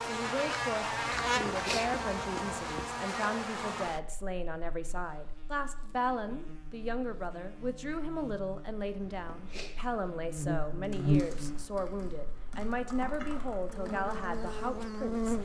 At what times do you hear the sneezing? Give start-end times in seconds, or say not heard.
1.1-2.8, 9.0-9.8.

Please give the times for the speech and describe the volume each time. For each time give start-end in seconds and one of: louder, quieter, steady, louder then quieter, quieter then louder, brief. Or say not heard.
0.0-15.3 steady.